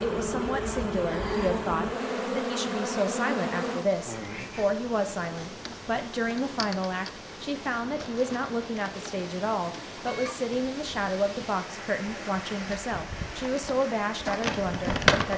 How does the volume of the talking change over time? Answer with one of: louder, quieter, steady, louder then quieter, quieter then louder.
steady.